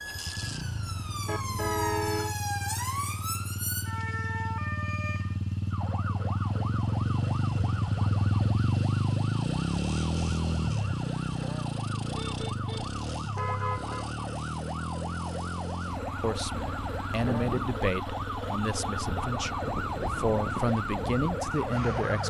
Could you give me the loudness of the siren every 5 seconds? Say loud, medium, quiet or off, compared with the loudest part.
loud, medium, medium, loud, loud.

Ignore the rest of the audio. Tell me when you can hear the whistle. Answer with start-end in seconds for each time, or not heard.
not heard.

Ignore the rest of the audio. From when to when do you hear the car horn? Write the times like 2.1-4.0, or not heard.
1.2-2.4, 12.2-14.1.